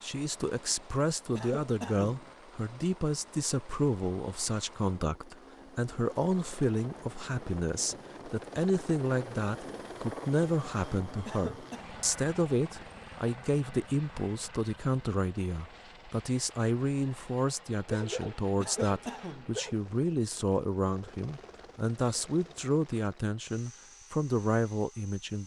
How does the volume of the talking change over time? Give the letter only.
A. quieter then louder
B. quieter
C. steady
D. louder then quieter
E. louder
C.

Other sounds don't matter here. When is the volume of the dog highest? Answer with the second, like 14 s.
18 s.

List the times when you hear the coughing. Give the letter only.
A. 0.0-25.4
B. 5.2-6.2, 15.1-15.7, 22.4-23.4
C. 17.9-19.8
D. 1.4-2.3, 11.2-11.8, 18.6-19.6
D.